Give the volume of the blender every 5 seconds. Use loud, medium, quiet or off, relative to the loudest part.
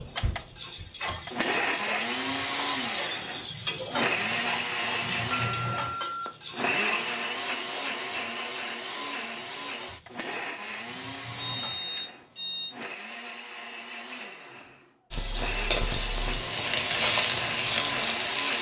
loud, loud, medium, loud.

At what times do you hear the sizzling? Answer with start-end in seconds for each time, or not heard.
0.0-12.1, 15.1-18.5.